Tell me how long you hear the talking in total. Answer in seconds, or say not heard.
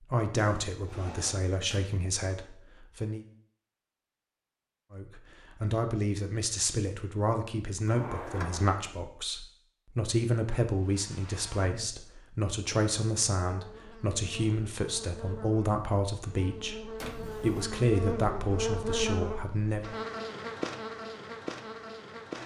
18 s.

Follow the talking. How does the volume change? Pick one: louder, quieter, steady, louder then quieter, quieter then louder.
steady.